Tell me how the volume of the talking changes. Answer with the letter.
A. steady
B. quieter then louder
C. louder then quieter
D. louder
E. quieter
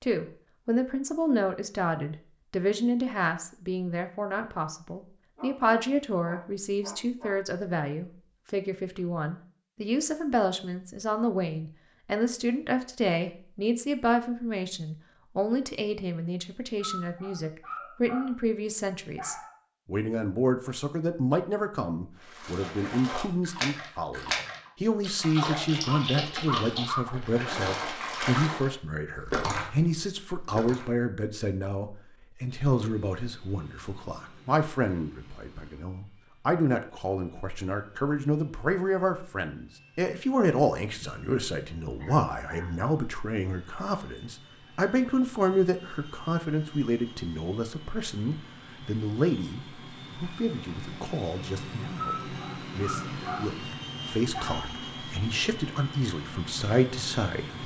A.